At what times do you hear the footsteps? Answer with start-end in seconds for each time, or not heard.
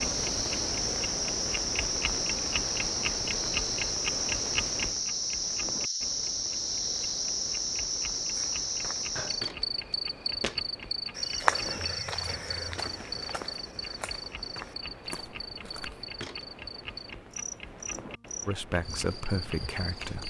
8.3-16.4.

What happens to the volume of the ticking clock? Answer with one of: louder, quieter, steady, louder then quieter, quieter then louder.
quieter.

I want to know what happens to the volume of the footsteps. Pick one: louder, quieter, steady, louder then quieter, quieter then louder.
louder then quieter.